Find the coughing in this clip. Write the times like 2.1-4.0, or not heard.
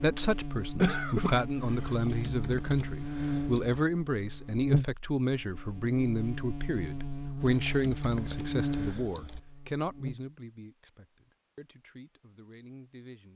0.8-1.9.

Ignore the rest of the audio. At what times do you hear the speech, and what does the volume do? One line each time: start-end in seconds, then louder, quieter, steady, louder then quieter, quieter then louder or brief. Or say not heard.
0.0-13.3 quieter.